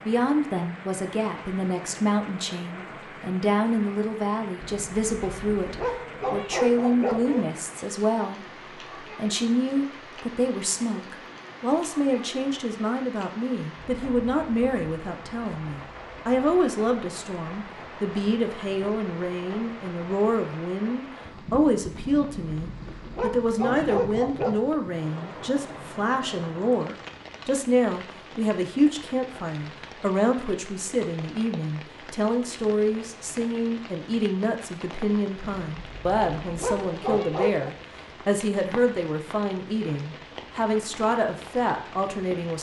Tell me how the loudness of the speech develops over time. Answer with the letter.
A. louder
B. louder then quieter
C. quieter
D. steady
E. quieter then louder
D.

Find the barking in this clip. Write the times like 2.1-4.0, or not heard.
4.6-7.5, 21.9-24.6, 35.4-37.8.